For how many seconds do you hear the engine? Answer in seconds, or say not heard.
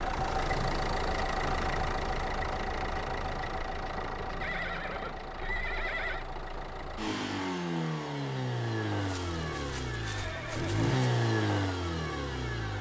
13 s.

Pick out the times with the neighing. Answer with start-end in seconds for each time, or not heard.
0.3-0.8, 4.4-6.2, 9.0-11.0.